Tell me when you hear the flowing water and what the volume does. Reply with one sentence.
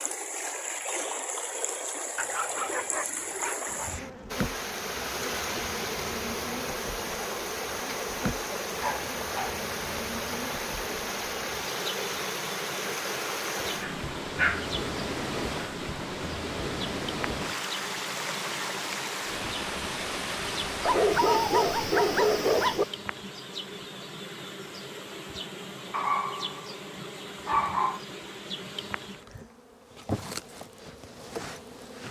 You can hear the flowing water from 0.0 to 22.9 s, at a steady volume.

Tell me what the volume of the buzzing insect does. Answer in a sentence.
The loudness of the buzzing insect stays about the same.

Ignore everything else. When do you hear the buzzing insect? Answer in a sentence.
You can hear the buzzing insect from 3.6 to 32.0 s.